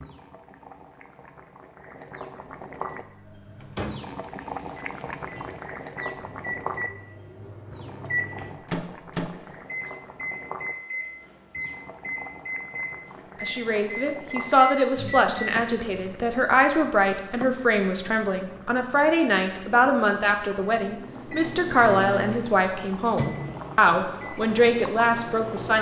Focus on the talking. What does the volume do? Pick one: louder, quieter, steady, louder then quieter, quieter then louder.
steady.